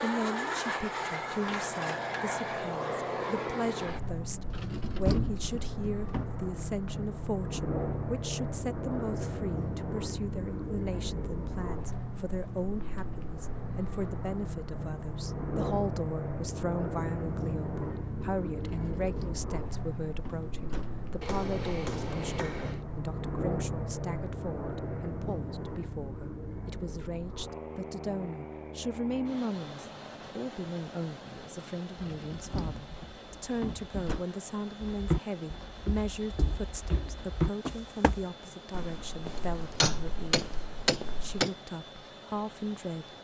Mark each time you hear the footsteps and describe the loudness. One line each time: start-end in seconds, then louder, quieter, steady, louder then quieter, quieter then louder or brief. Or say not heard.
34.9-41.5 louder then quieter.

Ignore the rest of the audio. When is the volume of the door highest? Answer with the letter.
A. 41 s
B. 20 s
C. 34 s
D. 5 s
D.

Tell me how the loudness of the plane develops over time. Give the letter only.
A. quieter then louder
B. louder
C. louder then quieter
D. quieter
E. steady
D.